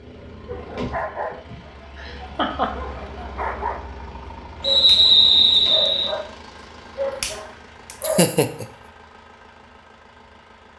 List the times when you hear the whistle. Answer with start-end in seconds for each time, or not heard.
4.6-6.2.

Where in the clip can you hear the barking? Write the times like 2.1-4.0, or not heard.
0.5-3.8, 4.6-6.2, 7.0-8.2.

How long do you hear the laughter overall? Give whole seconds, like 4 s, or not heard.
2 s.